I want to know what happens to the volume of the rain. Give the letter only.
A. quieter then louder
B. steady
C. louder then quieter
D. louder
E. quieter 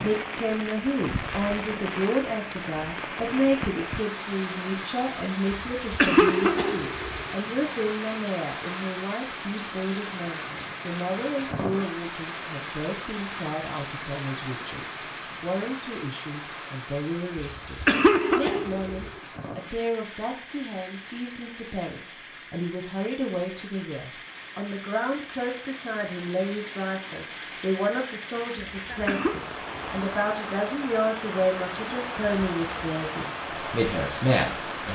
A.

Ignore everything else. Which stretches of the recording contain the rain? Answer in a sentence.
You can hear the rain from 0.0 to 34.9 s.